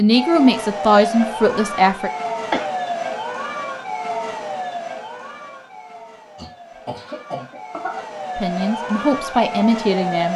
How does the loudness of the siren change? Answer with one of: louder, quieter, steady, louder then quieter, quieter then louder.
quieter then louder.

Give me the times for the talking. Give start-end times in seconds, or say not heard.
0.0-2.1, 8.3-10.3.